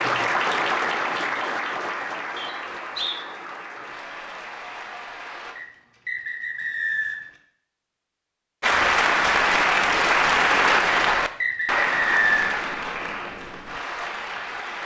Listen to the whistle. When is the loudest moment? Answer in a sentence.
The loudest moment of the whistle is at 12 seconds.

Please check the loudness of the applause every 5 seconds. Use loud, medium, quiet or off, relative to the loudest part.
medium, loud, loud.